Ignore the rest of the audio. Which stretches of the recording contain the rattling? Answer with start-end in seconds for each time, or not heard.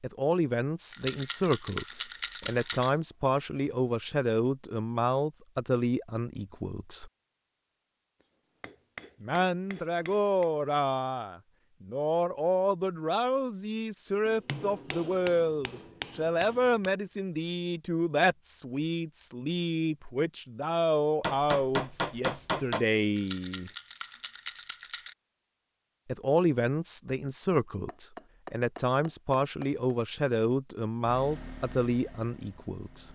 0.9-2.9, 23.1-25.1.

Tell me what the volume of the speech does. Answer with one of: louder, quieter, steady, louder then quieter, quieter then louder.
steady.